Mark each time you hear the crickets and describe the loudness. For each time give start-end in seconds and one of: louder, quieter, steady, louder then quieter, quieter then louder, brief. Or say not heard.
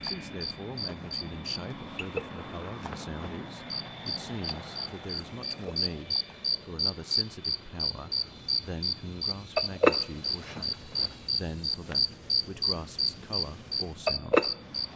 0.0-14.9 louder.